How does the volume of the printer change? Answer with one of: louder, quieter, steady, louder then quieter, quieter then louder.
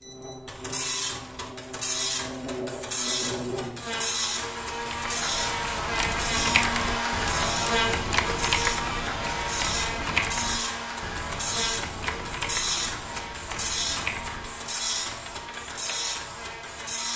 steady.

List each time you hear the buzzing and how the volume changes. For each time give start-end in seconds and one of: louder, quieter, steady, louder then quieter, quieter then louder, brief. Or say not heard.
0.0-17.1 louder then quieter.